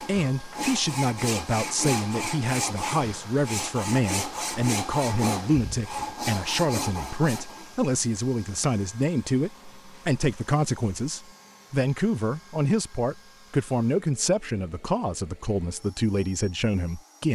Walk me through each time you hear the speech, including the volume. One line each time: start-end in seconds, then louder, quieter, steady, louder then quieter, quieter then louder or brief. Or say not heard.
0.1-17.3 steady.